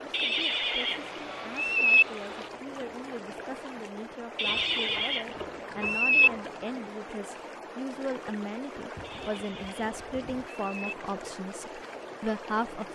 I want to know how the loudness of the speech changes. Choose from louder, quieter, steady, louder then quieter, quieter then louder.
louder.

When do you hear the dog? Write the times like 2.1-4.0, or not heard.
not heard.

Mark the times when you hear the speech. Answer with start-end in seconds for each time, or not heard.
0.2-12.9.